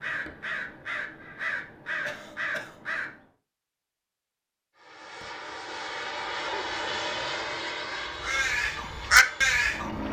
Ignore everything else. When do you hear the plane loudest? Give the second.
7 s.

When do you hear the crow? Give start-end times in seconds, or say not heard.
0.0-3.2, 8.0-10.0.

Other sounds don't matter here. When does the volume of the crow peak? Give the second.
9 s.